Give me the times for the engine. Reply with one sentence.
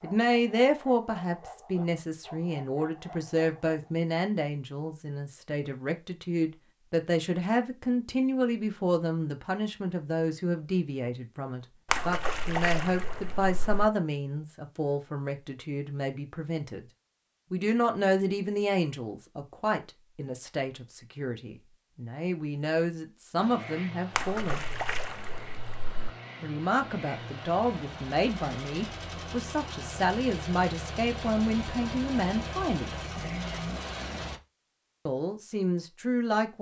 You can hear the engine from 23.4 to 34.4 s.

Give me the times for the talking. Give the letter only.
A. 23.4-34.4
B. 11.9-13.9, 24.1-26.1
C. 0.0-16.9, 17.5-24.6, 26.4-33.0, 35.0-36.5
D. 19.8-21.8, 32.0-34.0
C.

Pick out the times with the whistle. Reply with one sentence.
You can't hear the whistle here.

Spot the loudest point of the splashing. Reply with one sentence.
The volume of the splashing peaks at 12 seconds.